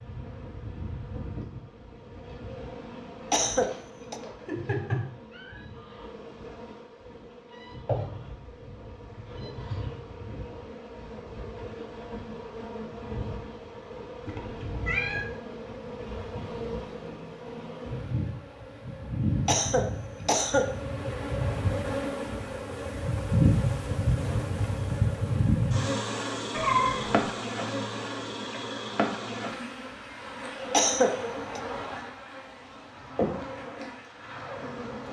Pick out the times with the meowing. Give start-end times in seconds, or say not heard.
4.4-5.6, 14.2-15.2, 26.5-27.2.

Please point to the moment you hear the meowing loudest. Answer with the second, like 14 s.
27 s.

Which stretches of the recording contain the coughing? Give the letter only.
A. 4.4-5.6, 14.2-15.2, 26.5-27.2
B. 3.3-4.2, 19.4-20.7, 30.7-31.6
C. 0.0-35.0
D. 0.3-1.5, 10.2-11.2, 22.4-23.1
B.